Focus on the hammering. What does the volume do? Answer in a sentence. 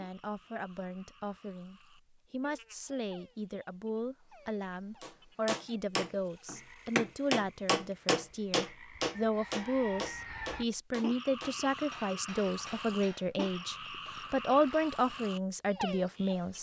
The volume of the hammering goes down.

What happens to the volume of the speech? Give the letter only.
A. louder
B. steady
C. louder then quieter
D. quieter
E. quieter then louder
A.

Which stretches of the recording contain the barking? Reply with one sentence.
You can't hear the barking here.